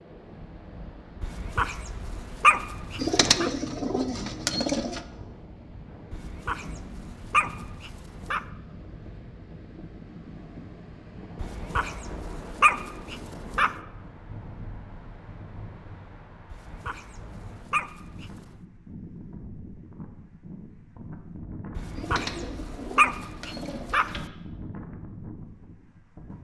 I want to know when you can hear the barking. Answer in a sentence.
You can hear the barking from 1.2 to 3.5 s, from 6.1 to 8.4 s, from 11.3 to 13.8 s, from 16.5 to 18.6 s and from 21.8 to 24.2 s.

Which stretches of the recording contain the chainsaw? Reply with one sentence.
The chainsaw can't be heard in this clip.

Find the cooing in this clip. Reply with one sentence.
The cooing can be heard from 3.0 to 5.0 s and from 21.9 to 24.3 s.